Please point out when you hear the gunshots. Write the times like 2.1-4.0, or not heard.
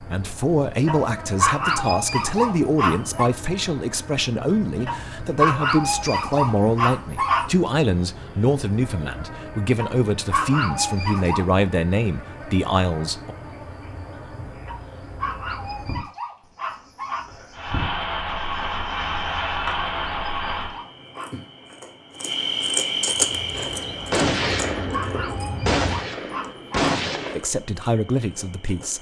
23.5-27.4.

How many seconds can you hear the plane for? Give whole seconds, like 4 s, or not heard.
6 s.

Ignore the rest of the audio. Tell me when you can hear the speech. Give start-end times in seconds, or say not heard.
0.0-13.3, 27.4-28.9.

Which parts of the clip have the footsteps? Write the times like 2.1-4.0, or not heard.
not heard.